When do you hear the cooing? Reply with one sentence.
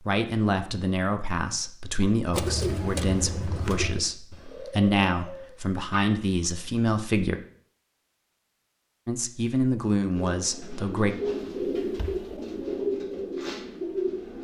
The cooing can be heard from 2.3 to 6.1 s and from 10.2 to 14.3 s.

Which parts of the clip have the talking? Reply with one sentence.
You can hear the talking from 0.0 to 7.4 s and from 9.1 to 11.2 s.